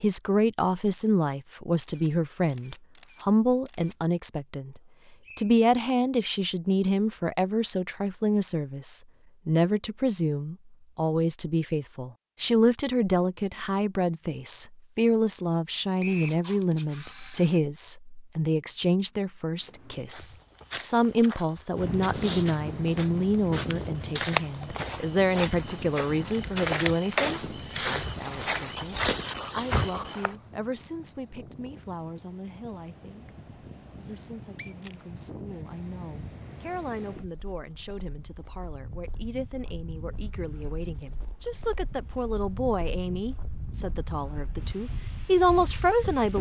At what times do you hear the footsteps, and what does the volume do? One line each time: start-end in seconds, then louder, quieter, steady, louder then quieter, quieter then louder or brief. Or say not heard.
19.6-30.3 louder.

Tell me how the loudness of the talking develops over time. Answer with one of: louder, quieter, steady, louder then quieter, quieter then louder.
quieter then louder.